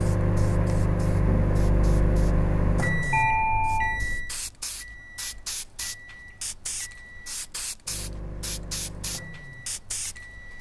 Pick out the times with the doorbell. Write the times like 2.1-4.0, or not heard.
3.1-4.0.